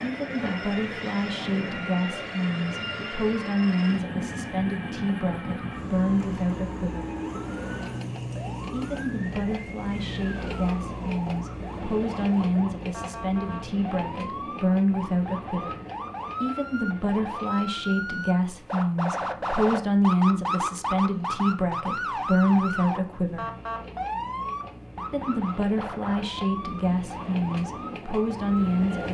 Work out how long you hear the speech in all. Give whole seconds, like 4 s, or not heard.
25 s.